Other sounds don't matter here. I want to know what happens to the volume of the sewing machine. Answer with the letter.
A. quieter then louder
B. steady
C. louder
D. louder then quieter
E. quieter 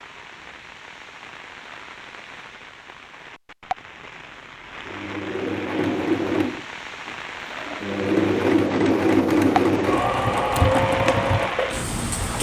A.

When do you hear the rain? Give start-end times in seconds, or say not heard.
0.0-12.3.